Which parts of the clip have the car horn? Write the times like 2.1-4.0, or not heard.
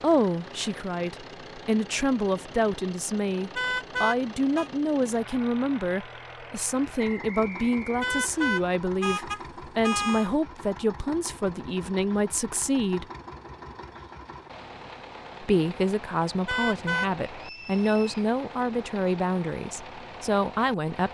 3.5-4.7, 8.0-10.3, 16.4-17.1.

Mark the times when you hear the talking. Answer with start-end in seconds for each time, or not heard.
0.0-13.1, 15.4-21.0.